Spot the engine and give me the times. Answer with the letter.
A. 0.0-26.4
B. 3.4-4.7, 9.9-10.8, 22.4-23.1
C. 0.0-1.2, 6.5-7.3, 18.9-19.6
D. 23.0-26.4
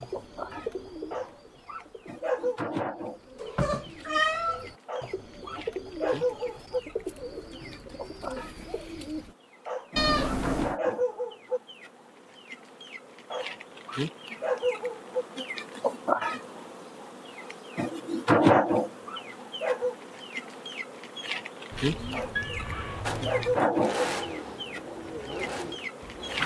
D.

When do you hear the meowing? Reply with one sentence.
You can hear the meowing from 3.4 to 4.7 s, from 9.9 to 10.8 s and from 22.4 to 23.1 s.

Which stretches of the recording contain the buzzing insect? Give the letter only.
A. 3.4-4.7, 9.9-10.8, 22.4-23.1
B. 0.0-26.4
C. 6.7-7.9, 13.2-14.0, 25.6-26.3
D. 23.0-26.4
B.